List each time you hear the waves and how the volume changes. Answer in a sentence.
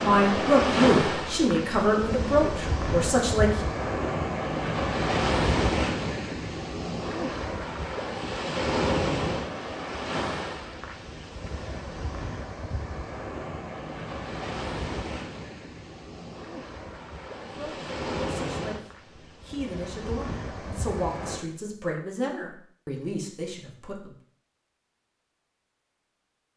You can hear the waves from 0.0 to 21.4 s, getting quieter.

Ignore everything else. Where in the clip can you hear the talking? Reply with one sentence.
You can hear the talking from 0.0 to 3.6 s and from 17.4 to 24.1 s.